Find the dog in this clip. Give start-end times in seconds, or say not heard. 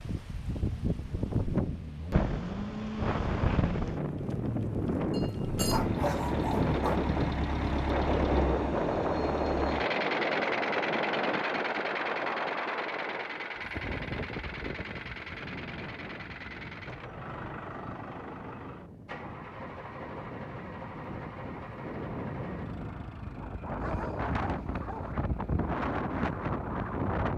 5.1-7.0, 23.8-25.1.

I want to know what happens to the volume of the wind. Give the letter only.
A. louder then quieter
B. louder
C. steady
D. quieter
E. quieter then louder
E.